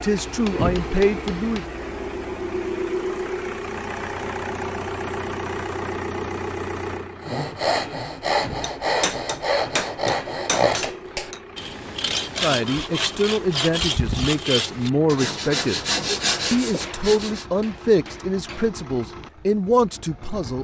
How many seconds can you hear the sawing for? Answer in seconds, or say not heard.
10 s.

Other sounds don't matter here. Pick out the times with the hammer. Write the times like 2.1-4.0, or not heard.
0.1-1.7, 8.6-11.4, 16.4-18.7.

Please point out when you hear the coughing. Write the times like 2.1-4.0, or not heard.
not heard.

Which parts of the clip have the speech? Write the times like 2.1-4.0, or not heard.
0.0-1.6, 12.4-15.8, 16.5-20.5.